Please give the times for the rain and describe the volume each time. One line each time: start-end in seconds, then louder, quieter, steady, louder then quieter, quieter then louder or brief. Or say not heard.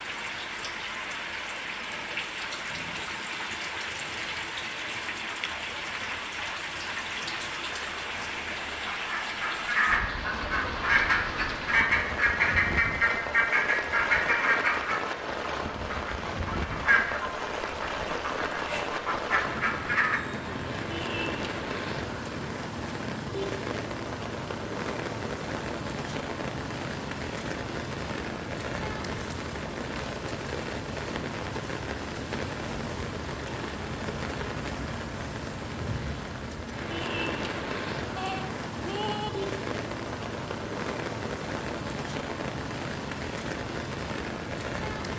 0.0-45.1 steady.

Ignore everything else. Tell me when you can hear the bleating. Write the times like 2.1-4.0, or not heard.
38.1-39.3.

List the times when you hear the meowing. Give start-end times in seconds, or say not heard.
not heard.